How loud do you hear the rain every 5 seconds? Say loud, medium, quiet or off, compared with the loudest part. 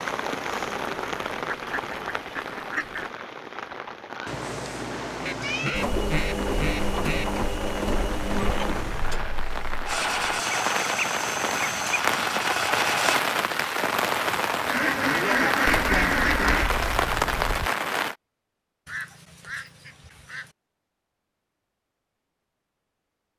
medium, medium, loud, loud, off.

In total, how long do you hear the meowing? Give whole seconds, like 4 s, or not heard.
5 s.